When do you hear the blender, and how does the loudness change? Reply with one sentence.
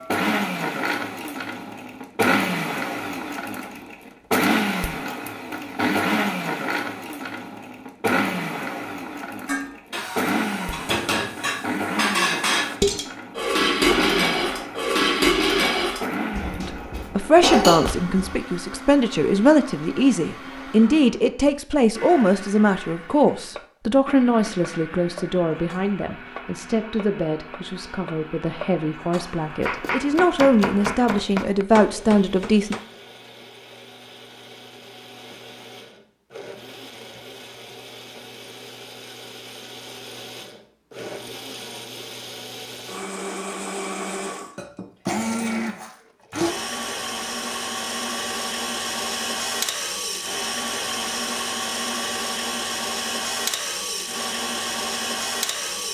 You can hear the blender from 0.0 to 55.9 s, getting quieter then louder.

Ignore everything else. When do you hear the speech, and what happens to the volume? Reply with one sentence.
You can hear the speech from 16.6 to 32.8 s, getting quieter then louder.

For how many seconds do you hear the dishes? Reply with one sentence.
You can hear the dishes for 9 seconds altogether.